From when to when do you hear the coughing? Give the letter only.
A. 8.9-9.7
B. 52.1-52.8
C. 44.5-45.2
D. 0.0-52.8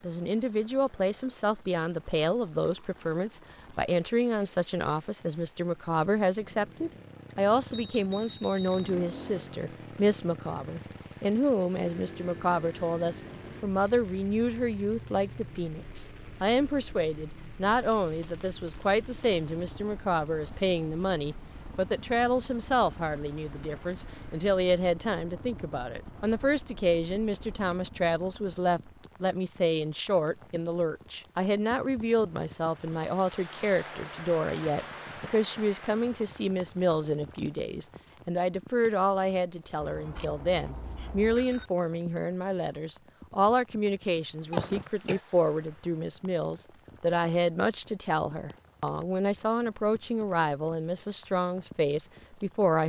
C.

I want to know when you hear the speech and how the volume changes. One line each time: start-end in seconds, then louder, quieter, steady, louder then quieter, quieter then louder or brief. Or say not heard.
0.0-52.8 steady.